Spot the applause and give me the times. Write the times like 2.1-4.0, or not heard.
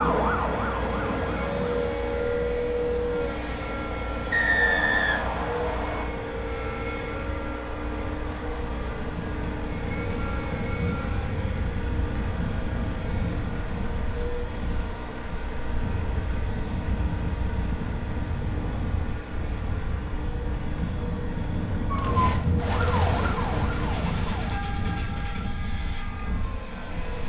not heard.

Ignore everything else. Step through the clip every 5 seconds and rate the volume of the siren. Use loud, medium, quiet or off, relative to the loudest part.
loud, off, off, off, loud, quiet.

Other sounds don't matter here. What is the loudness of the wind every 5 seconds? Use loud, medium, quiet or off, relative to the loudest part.
loud, medium, loud, loud, loud, medium.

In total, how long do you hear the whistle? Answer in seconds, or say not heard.
2 s.